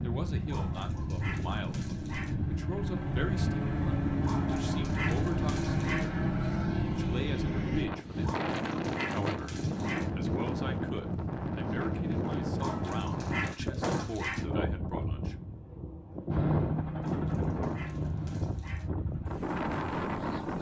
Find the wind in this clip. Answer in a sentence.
The wind can be heard from 0.0 to 20.5 s.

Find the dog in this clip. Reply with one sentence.
The dog can be heard from 0.5 to 2.4 s, from 4.2 to 6.1 s, from 8.2 to 10.1 s, from 12.6 to 14.4 s and from 17.0 to 18.9 s.